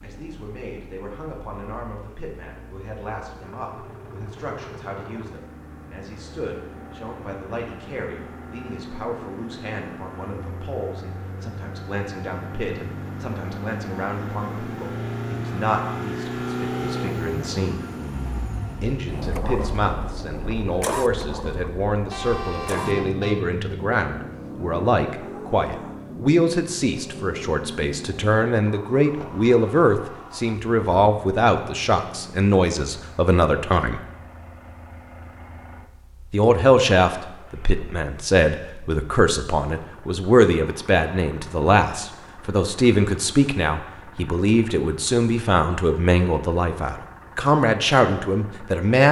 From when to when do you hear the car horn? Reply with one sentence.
The car horn can be heard from 22.1 to 23.4 s.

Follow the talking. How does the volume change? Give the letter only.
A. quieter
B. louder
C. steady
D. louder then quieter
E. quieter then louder
B.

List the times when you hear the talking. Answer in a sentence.
You can hear the talking from 0.0 to 17.8 s, from 18.8 to 34.0 s and from 36.3 to 49.0 s.